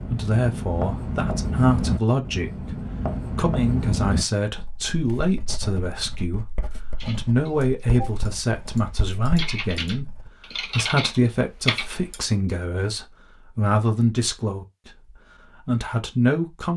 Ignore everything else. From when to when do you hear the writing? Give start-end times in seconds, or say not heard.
0.0-10.6.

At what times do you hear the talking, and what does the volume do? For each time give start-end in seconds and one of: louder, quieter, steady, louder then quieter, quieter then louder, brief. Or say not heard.
0.0-16.7 steady.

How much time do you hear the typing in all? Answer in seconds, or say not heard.
5 s.